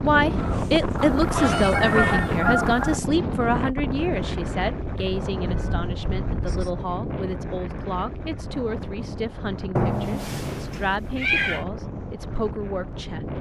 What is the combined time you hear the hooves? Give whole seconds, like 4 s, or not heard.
not heard.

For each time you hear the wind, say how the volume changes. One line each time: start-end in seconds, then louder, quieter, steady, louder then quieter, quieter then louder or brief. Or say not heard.
0.0-13.3 quieter.